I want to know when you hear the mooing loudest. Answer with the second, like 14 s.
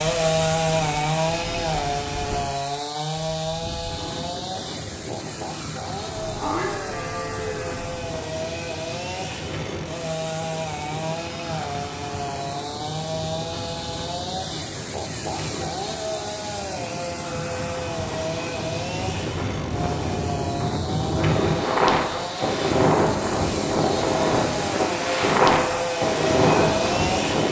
7 s.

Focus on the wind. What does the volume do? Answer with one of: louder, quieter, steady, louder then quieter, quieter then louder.
louder.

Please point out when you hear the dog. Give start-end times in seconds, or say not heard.
not heard.